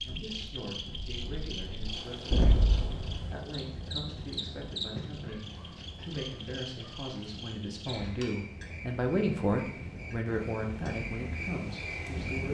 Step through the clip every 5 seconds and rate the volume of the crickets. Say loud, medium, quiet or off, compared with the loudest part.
loud, medium, loud.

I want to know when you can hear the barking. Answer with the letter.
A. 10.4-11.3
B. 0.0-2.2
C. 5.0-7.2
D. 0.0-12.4
C.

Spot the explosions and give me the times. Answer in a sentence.
The explosions can be heard from 2.3 to 3.2 s.